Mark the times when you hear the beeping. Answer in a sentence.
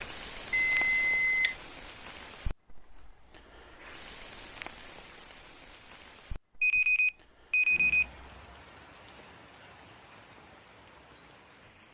The beeping can be heard from 0.5 to 1.6 s and from 6.6 to 8.1 s.